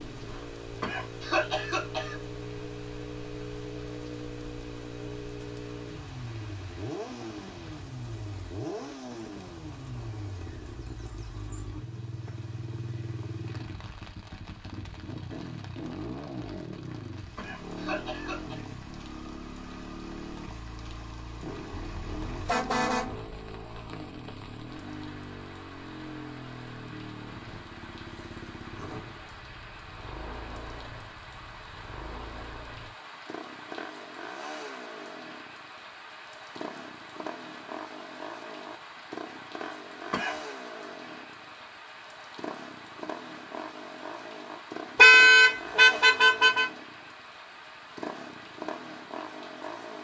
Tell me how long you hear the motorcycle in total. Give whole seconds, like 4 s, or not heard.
50 s.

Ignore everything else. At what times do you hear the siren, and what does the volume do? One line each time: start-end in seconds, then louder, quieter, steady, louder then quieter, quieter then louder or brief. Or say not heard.
not heard.